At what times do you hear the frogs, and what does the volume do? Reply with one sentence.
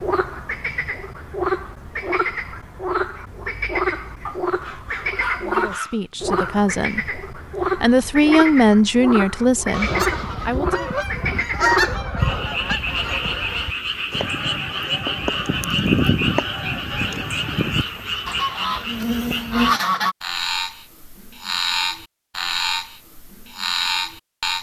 You can hear the frogs from 0.0 to 24.5 s, at a steady volume.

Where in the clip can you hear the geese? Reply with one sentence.
The geese can be heard from 9.7 to 20.1 s.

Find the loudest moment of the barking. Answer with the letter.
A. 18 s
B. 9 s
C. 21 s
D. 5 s
D.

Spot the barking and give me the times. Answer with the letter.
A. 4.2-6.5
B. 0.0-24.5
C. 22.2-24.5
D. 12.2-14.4
A.